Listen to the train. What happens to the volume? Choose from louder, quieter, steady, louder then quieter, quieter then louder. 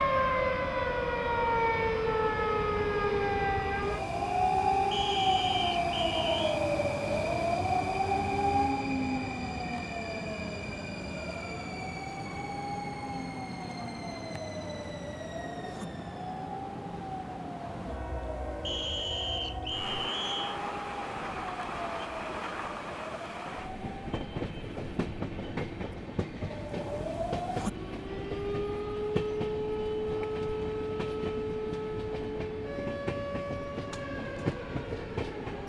steady.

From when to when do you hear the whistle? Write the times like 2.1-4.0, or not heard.
4.9-6.6, 18.6-20.6.